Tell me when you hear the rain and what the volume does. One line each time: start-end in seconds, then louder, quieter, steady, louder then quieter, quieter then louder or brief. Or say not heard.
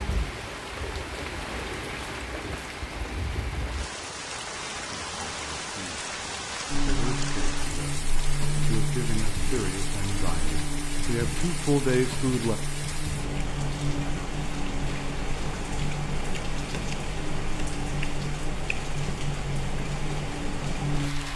0.0-21.3 steady.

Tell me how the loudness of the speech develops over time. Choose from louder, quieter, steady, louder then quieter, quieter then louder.
louder.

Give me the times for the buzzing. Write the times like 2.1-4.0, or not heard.
6.7-21.3.